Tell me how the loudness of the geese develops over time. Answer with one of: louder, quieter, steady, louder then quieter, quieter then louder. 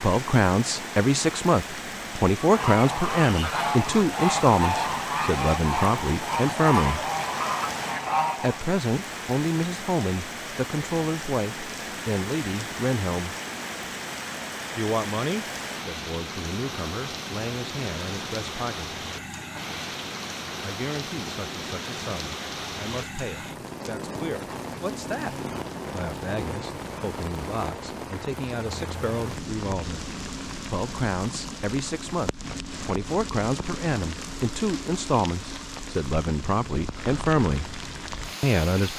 steady.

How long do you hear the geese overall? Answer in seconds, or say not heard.
6 s.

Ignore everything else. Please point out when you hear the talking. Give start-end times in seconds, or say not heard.
0.0-7.0, 8.4-13.3, 14.8-19.0, 20.6-30.1, 30.7-37.7, 38.4-38.9.